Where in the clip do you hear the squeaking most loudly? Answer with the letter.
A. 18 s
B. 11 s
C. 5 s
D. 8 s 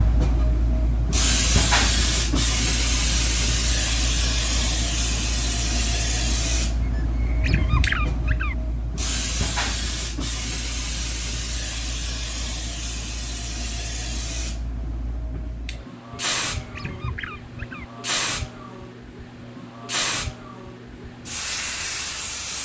D.